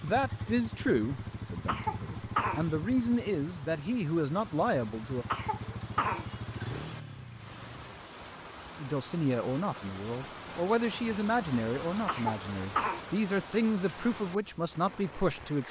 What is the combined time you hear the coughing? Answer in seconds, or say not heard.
3 s.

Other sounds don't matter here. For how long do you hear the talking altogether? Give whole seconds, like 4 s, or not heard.
12 s.